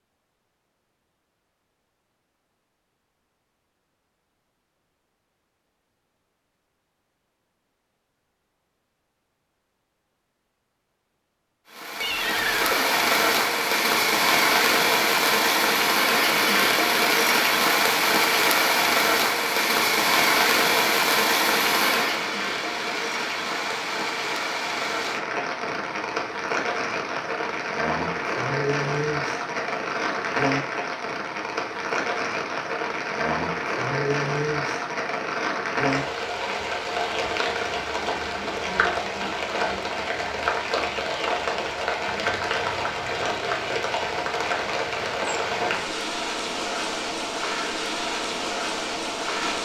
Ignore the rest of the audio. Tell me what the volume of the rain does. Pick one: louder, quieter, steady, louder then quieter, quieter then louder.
quieter.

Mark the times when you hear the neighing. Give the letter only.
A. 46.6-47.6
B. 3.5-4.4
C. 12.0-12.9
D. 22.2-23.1
C.